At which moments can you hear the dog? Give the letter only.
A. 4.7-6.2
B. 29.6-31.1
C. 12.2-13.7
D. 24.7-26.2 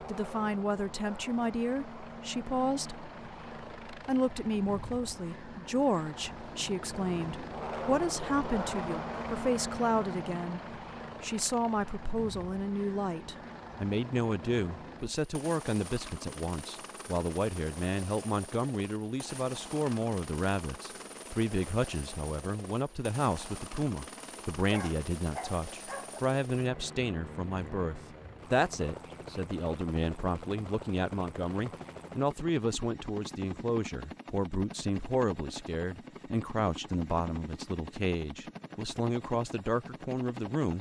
D.